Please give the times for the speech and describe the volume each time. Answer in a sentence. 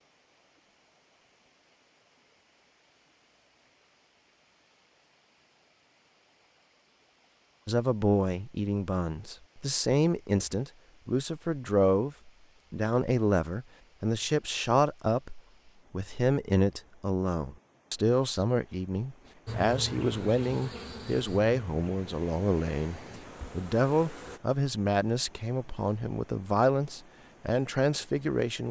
The speech can be heard from 7.7 to 28.6 s, at a steady volume.